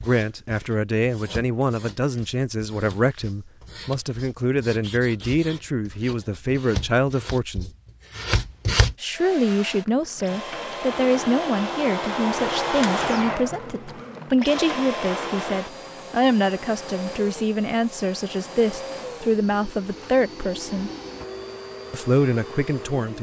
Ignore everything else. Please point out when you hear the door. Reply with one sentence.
You can't hear the door here.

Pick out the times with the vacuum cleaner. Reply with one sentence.
The vacuum cleaner can be heard from 9.2 to 23.1 s.